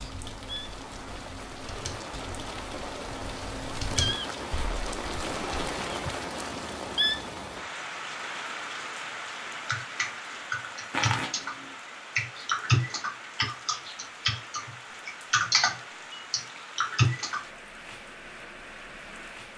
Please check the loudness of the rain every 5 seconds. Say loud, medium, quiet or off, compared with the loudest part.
loud, loud, medium, medium.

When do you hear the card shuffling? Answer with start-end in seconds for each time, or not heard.
10.9-11.8.